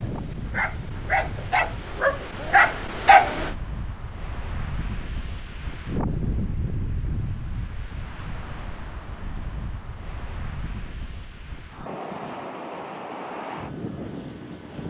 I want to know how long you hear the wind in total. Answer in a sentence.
You can hear the wind for 15 seconds altogether.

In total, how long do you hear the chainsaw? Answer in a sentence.
The chainsaw can't be heard in this clip.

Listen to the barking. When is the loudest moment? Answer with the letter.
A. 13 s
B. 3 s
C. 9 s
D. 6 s
B.